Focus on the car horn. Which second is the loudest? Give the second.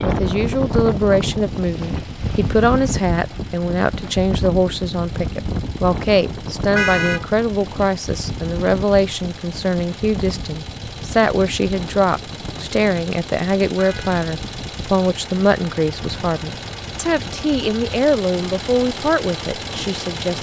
7 s.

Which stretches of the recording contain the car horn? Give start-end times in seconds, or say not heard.
6.8-7.2, 13.8-14.2.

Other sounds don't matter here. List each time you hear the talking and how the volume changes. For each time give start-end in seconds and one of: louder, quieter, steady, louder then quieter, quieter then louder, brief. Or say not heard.
0.0-20.3 steady.